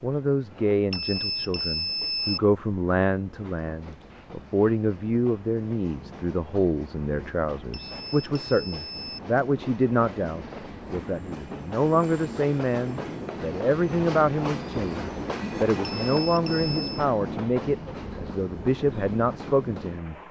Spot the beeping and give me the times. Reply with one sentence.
You can hear the beeping from 0.9 to 2.4 s, from 7.7 to 9.2 s and from 15.8 to 17.1 s.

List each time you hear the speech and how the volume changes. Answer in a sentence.
The speech can be heard from 0.0 to 20.1 s, at a steady volume.